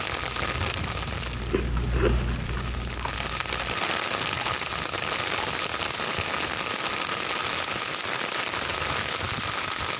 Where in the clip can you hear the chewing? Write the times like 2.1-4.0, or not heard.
0.1-5.5.